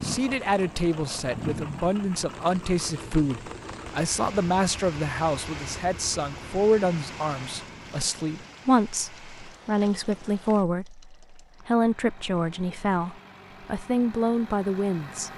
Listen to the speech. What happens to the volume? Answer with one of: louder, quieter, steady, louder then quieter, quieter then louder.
steady.